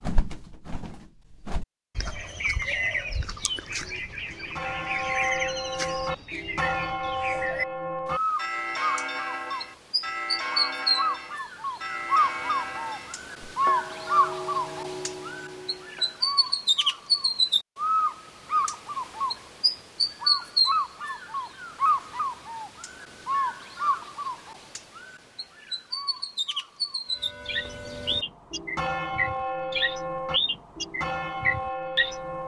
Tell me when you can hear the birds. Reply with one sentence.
You can hear the birds from 0.0 to 32.4 s.